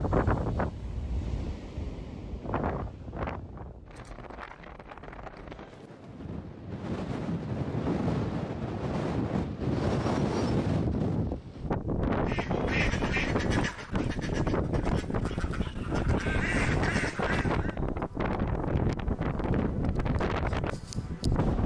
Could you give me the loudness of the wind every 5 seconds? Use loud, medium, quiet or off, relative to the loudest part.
medium, loud, loud, loud, loud.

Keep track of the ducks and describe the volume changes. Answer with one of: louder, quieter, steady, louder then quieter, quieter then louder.
quieter then louder.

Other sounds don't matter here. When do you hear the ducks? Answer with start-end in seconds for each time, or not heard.
12.2-17.8.